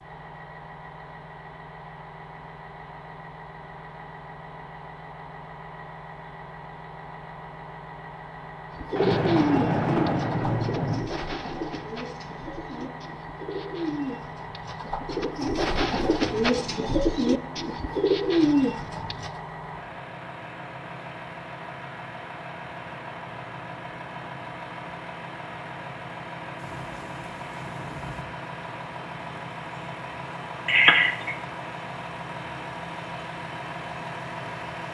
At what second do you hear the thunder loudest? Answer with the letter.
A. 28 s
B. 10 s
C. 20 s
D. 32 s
B.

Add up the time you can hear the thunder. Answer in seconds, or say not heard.
4 s.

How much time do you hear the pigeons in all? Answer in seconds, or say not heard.
11 s.